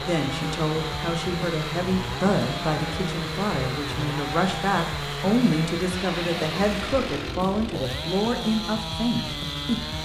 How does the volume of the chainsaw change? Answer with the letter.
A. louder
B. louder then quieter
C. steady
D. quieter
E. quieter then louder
C.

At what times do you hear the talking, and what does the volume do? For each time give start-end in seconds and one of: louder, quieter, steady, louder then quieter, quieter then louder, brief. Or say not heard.
0.0-10.0 steady.